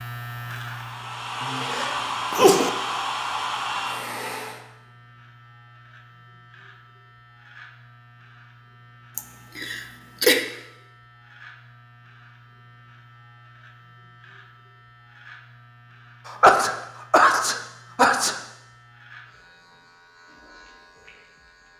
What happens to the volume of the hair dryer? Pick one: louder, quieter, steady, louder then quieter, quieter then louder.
louder.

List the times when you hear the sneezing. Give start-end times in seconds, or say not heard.
1.4-2.7, 9.2-10.4, 16.2-18.4.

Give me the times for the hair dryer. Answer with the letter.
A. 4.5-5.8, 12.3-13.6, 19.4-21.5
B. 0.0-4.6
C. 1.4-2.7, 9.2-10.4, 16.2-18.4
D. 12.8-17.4
B.